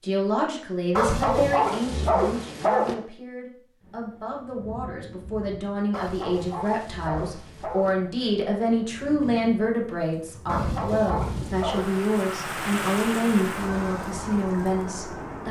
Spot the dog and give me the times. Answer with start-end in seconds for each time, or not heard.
0.9-3.0, 5.9-8.0, 10.4-12.0.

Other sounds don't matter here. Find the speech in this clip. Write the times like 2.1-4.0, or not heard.
0.0-15.4.